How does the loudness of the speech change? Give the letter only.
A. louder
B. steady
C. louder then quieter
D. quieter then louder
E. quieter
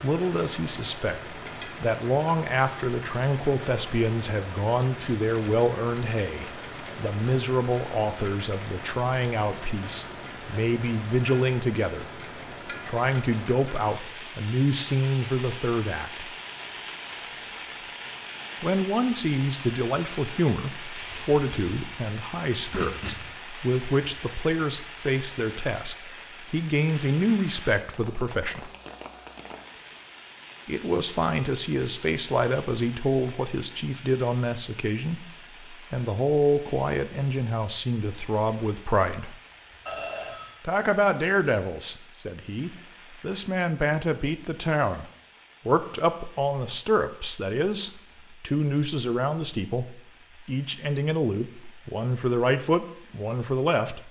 B.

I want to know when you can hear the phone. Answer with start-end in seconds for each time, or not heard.
22.7-23.4, 39.9-40.6.